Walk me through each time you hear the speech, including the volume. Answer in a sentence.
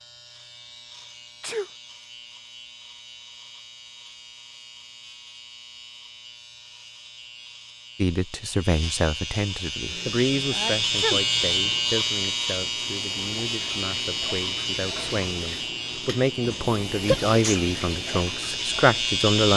The speech can be heard from 8.0 to 19.5 s, getting quieter then louder.